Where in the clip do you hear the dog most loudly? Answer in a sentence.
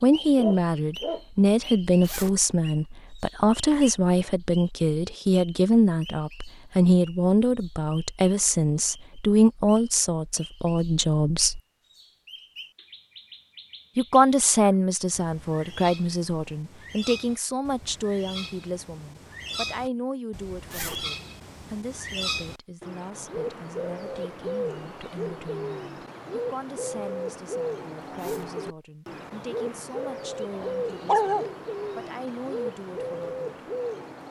The volume of the dog peaks at 31 seconds.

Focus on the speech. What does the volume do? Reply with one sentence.
The volume of the speech goes down.